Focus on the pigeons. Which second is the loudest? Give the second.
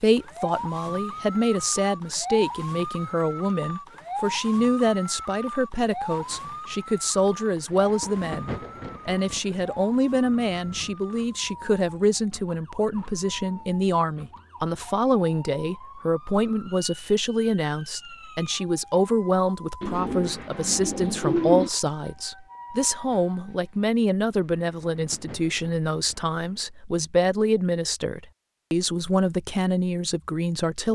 21 s.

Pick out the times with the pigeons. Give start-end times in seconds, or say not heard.
19.8-21.7.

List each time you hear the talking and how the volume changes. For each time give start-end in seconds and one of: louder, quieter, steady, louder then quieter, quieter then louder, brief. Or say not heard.
0.0-30.9 steady.